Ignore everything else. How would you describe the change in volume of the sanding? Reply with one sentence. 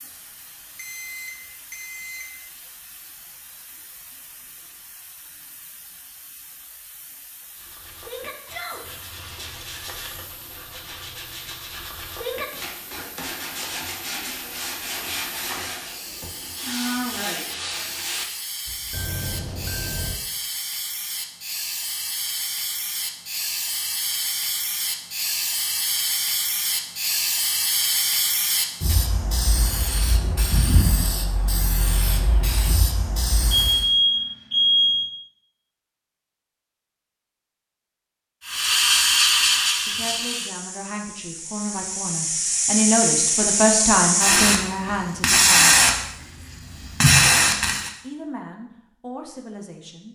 The volume of the sanding goes up.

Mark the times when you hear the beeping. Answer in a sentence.
The beeping can be heard from 0.8 to 2.2 s, from 18.9 to 20.1 s and from 33.5 to 35.1 s.